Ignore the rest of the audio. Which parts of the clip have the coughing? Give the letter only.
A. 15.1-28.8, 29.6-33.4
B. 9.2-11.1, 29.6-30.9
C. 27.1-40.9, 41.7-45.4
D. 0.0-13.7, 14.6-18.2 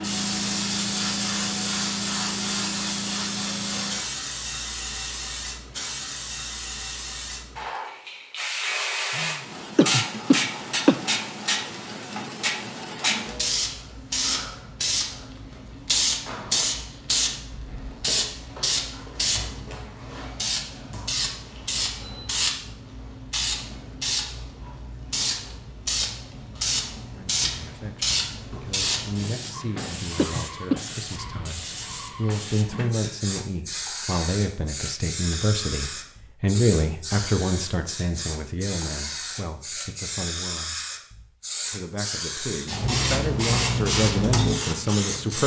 B.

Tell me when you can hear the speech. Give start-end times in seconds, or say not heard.
27.1-40.9, 41.7-45.4.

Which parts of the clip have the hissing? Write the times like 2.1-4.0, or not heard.
0.0-45.4.